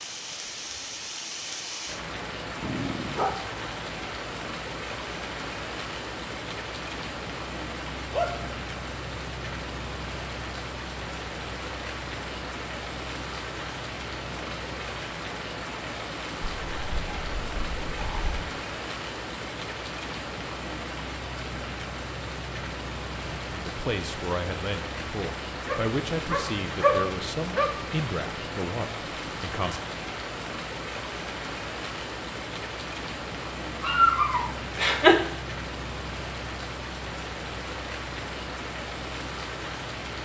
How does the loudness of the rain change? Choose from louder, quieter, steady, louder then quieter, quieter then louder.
steady.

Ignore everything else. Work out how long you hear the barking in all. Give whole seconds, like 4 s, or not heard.
7 s.